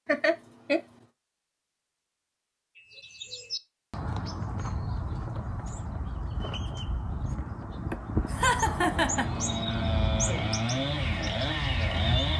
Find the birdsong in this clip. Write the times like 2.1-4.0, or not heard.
2.8-12.3.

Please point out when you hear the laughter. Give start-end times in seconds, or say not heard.
0.1-0.8, 7.9-9.3.